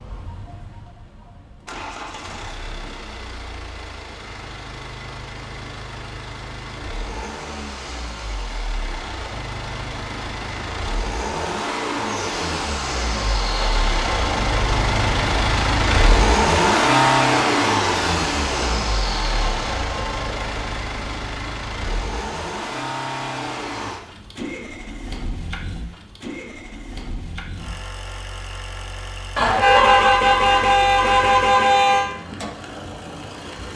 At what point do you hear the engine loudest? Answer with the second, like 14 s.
17 s.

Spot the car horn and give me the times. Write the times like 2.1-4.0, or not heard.
29.4-32.1.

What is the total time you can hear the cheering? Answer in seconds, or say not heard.
not heard.